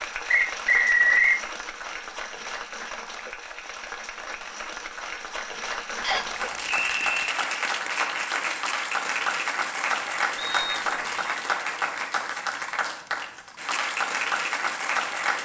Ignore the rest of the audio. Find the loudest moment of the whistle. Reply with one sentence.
The loudest moment of the whistle is at 1 second.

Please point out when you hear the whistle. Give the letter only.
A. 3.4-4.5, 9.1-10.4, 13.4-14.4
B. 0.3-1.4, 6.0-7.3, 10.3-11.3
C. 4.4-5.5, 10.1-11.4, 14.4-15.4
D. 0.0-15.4
B.